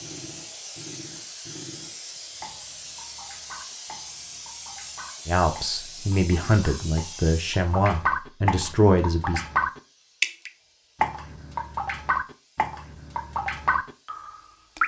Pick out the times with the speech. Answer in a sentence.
The speech can be heard from 5.2 to 9.4 s.